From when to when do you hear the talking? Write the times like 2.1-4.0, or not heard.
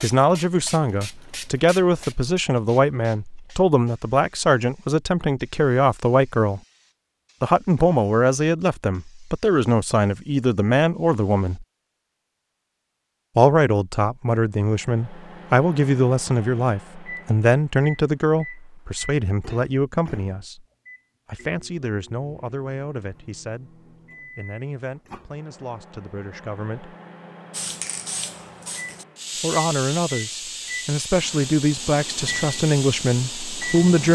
0.0-6.6, 7.4-11.7, 13.3-20.6, 21.2-26.9, 29.4-34.0.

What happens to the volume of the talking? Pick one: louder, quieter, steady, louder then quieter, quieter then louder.
quieter then louder.